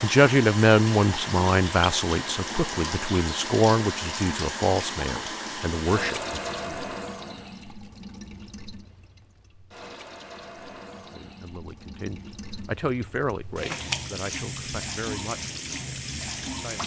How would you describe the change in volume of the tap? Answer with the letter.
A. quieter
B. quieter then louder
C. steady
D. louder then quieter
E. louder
B.